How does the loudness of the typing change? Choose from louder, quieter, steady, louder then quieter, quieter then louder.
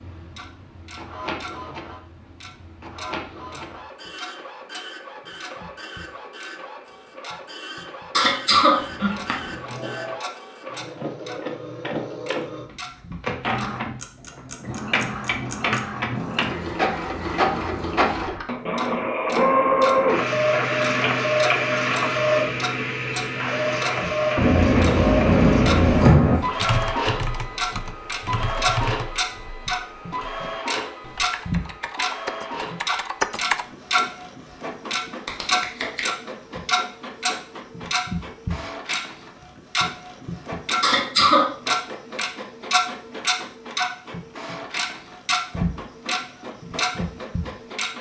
quieter then louder.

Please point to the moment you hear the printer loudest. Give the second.
20 s.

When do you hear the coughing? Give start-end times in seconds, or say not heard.
8.1-10.2, 40.8-41.5.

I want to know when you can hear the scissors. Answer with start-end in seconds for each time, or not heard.
8.8-9.6, 24.4-26.4, 35.2-36.0.